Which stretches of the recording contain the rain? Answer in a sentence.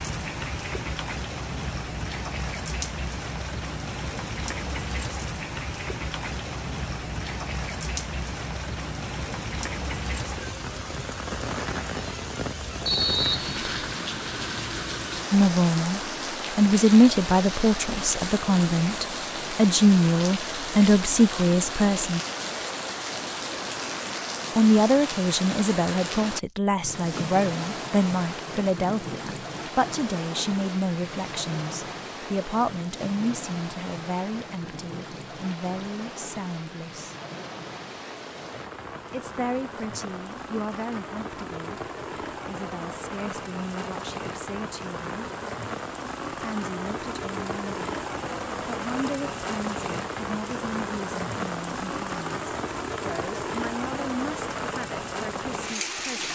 The rain can be heard from 0.0 to 56.2 s.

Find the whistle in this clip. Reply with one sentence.
The whistle can be heard from 12.8 to 13.9 s.